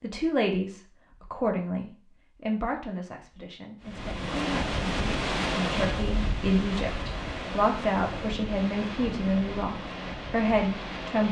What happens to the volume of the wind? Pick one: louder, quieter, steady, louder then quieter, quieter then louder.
quieter.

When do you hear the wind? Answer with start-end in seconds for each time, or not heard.
3.8-11.2.